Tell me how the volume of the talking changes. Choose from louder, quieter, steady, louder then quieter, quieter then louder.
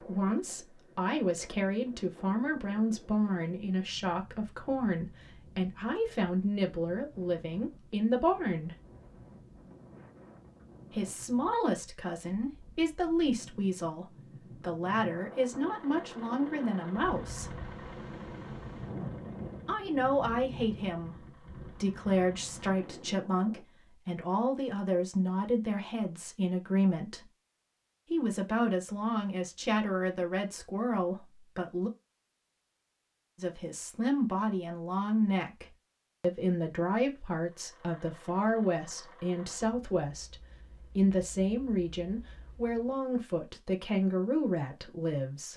steady.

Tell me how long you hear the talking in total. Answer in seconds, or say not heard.
39 s.